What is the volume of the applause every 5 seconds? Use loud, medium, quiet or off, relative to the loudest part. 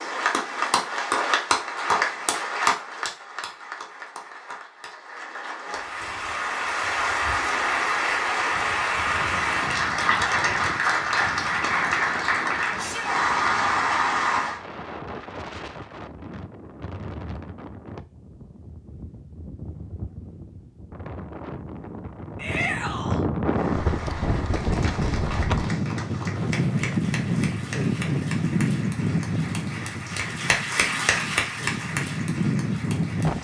loud, loud, loud, off, quiet, quiet, medium.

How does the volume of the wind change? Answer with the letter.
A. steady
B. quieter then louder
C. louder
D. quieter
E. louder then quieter
C.